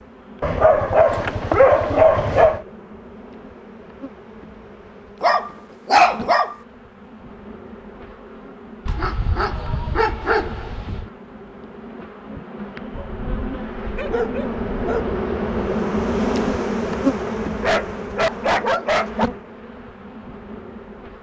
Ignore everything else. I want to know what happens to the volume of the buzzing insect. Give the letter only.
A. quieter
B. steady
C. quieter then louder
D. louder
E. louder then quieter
D.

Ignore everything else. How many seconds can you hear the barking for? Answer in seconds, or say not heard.
10 s.